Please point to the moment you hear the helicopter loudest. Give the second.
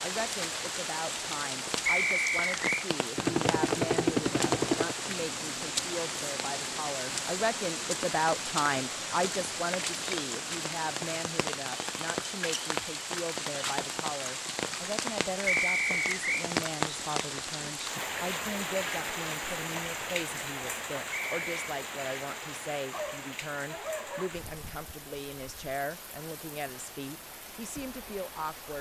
4 s.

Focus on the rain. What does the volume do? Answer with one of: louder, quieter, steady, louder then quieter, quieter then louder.
quieter.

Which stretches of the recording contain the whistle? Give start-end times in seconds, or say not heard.
1.9-2.9, 15.4-16.4, 21.1-21.6.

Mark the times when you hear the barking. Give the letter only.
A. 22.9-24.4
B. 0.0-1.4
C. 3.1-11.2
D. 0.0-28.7
A.